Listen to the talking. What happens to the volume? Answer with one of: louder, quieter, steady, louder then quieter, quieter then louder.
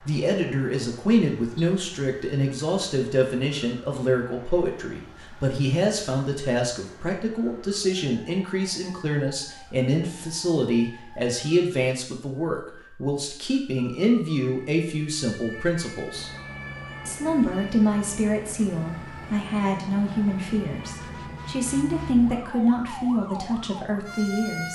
steady.